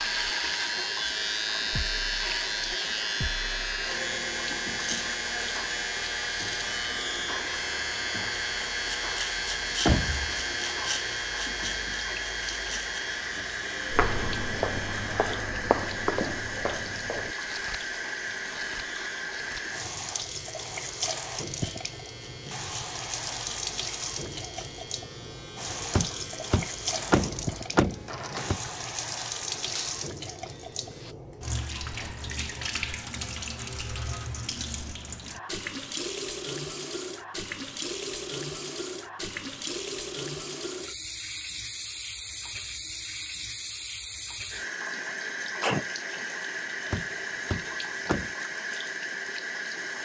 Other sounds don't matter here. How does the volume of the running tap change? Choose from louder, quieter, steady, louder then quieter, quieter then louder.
steady.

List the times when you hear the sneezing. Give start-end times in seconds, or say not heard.
45.4-45.9.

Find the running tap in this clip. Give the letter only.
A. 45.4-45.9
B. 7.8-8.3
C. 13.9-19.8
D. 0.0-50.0
D.